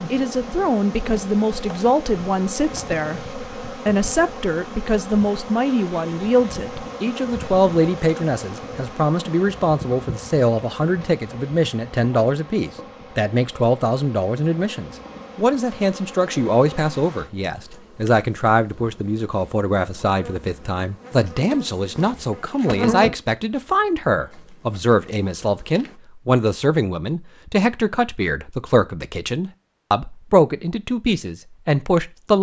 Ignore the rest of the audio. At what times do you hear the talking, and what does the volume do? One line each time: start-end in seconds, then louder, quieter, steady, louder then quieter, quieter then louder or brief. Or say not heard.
0.1-32.3 steady.